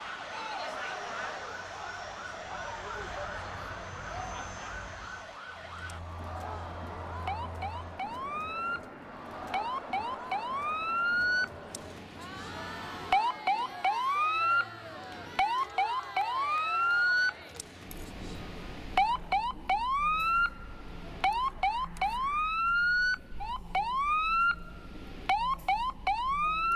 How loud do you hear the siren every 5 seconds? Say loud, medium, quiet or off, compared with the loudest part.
quiet, medium, loud, loud, loud, loud.